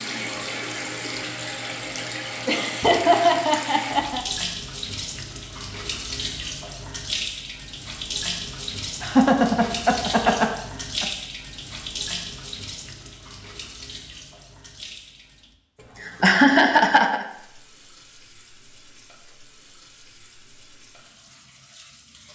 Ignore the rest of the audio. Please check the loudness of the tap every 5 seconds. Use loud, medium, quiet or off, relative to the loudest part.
loud, loud, loud, quiet, quiet.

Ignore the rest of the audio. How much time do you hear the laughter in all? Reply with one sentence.
You can hear the laughter for 5 seconds altogether.